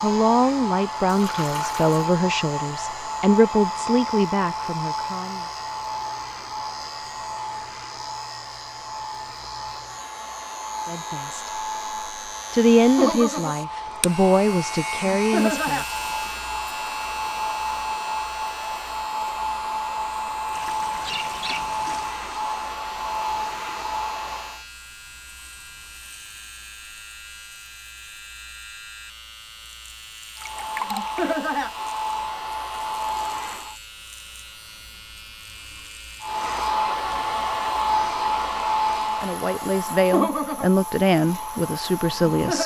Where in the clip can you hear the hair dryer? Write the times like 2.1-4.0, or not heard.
0.0-24.6, 30.4-33.8, 36.2-42.6.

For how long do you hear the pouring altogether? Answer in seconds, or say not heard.
4 s.